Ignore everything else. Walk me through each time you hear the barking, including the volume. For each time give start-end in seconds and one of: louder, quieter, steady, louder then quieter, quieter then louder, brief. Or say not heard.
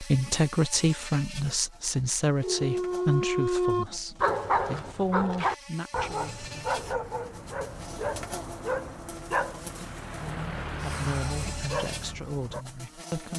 2.4-12.7 quieter.